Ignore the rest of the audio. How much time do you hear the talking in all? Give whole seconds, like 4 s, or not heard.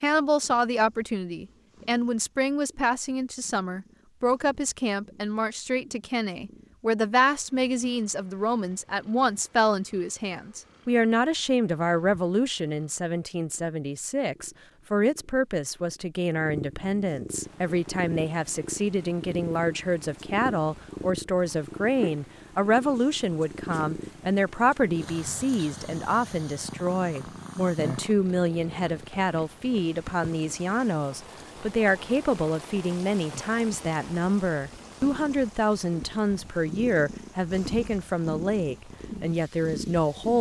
40 s.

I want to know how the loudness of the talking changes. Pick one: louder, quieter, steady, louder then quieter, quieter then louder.
steady.